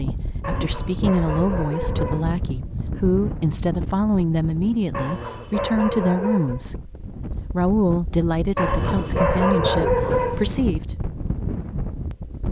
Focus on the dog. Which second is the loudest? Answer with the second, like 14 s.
10 s.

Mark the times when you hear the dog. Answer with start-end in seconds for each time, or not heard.
0.4-2.4, 4.9-6.6, 8.6-10.7.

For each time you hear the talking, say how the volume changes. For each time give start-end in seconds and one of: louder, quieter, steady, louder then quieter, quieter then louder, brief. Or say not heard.
0.0-10.9 steady.